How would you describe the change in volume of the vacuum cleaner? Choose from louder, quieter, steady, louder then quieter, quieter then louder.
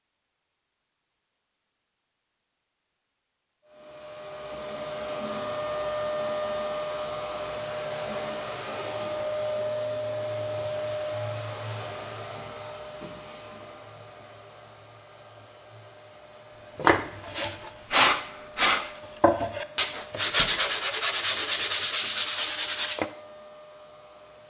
quieter.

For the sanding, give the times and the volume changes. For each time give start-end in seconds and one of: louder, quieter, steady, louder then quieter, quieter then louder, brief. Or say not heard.
16.8-23.1 steady.